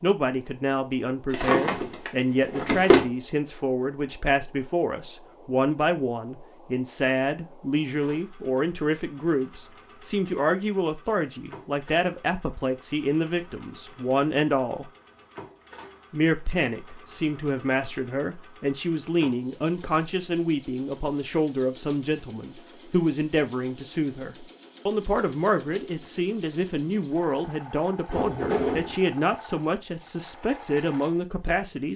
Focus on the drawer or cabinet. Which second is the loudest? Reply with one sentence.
The volume of the drawer or cabinet peaks at 3 seconds.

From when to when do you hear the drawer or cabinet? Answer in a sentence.
You can hear the drawer or cabinet from 1.3 to 3.1 s and from 28.1 to 28.9 s.